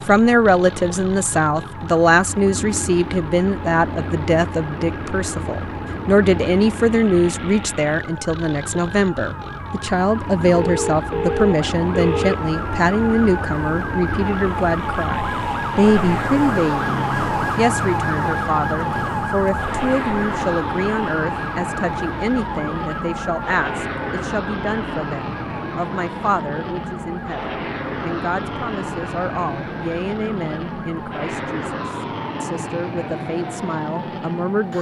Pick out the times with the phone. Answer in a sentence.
You can hear the phone from 10.5 to 12.4 s.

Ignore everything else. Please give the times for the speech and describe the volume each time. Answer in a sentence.
The speech can be heard from 0.1 to 34.7 s, getting quieter.